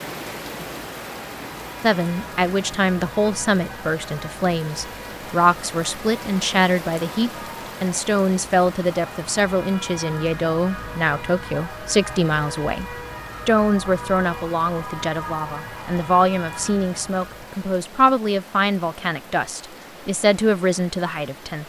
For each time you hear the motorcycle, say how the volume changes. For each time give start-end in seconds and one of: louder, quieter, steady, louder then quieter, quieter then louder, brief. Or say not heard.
not heard.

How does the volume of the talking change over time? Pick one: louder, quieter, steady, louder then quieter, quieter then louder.
steady.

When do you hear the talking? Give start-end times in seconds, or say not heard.
1.8-21.6.